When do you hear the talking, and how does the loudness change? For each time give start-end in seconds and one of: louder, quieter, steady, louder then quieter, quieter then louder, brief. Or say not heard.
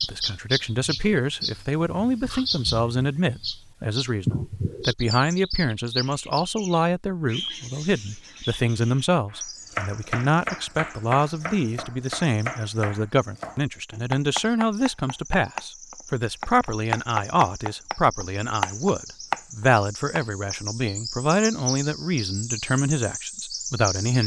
0.0-24.2 steady.